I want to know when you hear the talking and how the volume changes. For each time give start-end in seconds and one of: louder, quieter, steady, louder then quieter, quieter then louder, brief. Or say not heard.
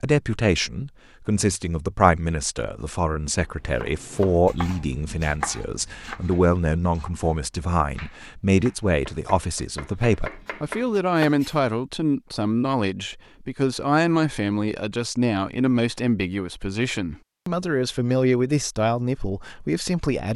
0.0-20.3 steady.